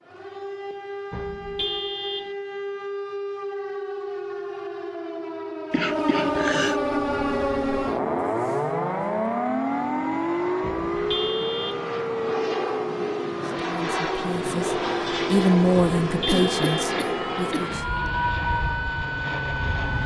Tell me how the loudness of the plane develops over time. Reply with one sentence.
The volume of the plane goes up.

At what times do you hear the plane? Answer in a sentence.
The plane can be heard from 6.7 to 20.0 s.